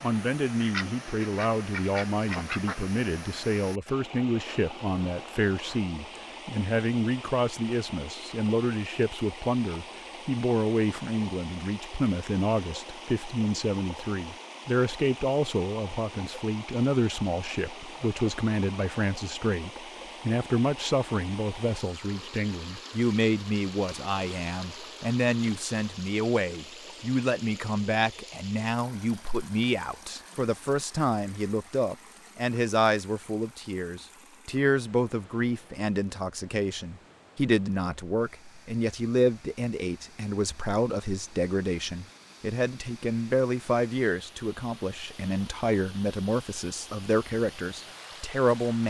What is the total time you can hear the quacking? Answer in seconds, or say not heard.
2 s.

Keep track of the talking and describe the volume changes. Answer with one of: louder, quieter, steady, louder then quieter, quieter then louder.
steady.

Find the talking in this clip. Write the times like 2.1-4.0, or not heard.
0.0-48.8.